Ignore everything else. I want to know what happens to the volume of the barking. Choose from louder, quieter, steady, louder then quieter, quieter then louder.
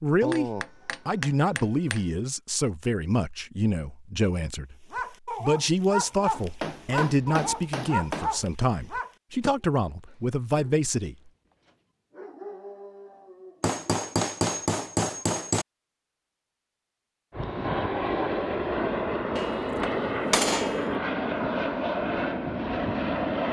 quieter then louder.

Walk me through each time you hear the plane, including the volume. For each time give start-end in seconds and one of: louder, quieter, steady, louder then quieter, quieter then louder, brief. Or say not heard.
17.3-23.4 steady.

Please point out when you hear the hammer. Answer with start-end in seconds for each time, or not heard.
0.2-2.0, 6.3-8.4, 13.6-15.7, 19.4-20.9.